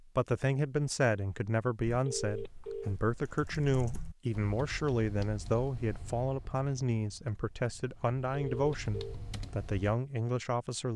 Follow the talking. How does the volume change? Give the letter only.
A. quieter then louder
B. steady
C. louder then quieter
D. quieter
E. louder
B.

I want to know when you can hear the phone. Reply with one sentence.
You can hear the phone from 2.0 to 3.0 s and from 8.3 to 9.2 s.